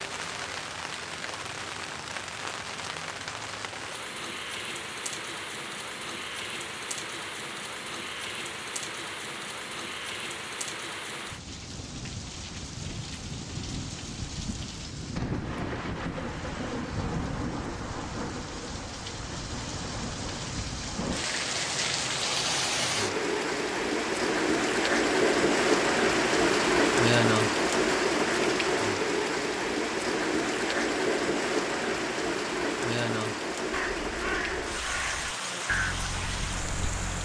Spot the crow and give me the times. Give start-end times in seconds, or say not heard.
33.7-37.1.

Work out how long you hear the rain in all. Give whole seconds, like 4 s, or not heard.
37 s.